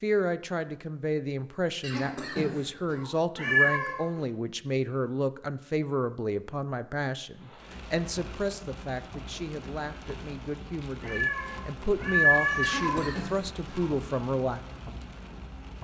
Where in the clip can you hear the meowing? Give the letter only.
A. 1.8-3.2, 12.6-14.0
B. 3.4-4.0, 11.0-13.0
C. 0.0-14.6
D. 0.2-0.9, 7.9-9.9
B.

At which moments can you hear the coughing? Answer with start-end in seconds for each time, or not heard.
1.8-3.2, 12.6-14.0.